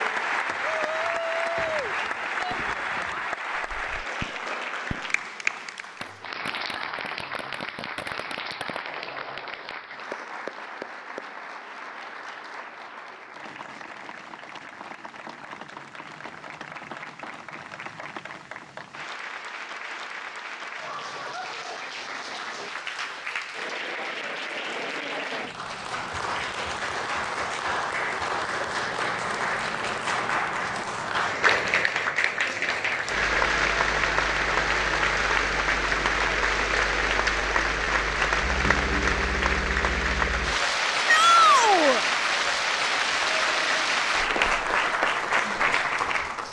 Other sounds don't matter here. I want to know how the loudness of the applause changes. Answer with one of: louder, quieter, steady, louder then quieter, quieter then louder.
quieter then louder.